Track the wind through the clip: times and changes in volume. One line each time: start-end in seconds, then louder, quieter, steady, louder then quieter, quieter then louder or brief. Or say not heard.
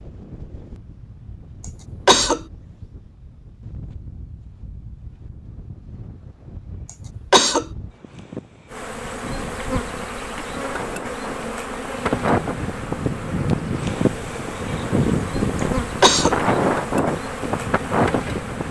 0.0-18.6 louder.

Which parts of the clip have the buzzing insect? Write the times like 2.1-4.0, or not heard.
8.7-18.6.